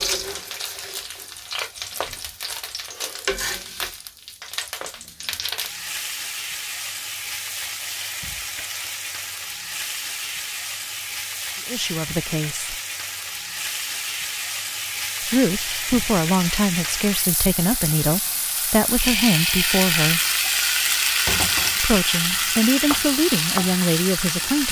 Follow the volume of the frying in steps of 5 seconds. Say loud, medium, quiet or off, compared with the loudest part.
medium, medium, medium, loud, loud.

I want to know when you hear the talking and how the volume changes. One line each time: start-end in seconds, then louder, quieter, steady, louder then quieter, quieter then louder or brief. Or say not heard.
11.7-12.8 brief
15.2-20.2 steady
21.8-24.6 brief.